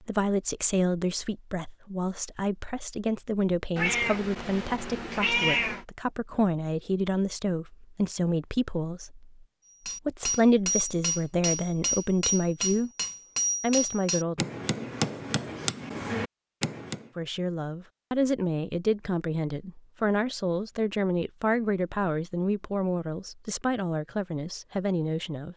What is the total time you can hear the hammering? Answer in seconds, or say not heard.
7 s.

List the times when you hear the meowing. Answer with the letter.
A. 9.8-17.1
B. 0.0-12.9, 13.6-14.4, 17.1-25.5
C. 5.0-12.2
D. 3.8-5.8
D.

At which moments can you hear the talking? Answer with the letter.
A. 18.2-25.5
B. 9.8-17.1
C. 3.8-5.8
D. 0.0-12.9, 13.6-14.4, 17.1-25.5
D.